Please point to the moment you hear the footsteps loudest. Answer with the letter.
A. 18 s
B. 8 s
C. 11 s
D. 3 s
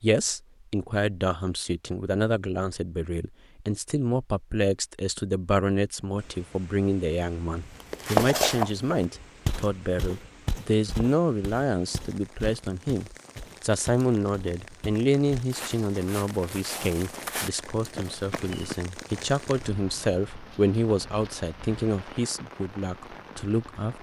B.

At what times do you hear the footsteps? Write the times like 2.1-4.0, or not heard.
7.8-18.8.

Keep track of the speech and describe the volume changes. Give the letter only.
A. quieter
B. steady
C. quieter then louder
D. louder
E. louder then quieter
B.